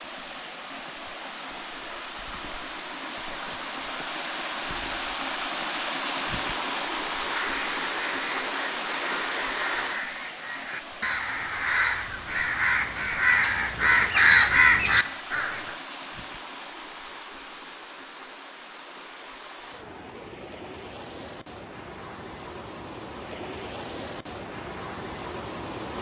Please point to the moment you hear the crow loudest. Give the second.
14 s.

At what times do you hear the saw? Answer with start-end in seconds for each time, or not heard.
not heard.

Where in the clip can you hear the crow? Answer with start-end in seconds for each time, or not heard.
7.2-15.8.